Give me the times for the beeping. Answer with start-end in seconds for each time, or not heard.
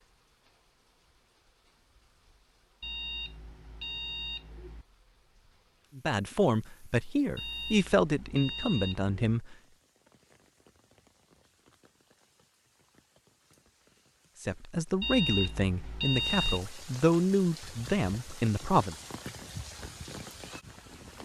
2.8-4.8, 7.3-9.2, 15.0-16.7.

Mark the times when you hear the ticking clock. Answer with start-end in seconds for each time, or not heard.
not heard.